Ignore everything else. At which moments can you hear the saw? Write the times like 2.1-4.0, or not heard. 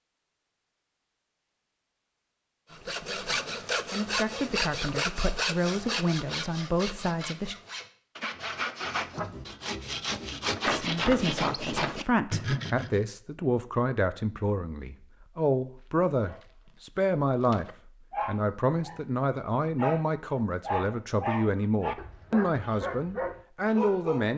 2.7-13.0.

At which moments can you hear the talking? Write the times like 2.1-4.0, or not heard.
2.7-7.5, 10.7-24.3.